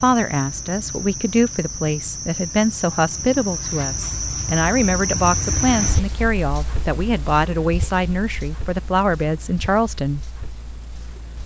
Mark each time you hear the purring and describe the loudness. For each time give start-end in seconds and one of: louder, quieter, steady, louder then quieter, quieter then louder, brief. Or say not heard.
not heard.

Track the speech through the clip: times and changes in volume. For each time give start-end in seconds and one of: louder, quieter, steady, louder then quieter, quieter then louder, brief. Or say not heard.
0.0-10.3 steady.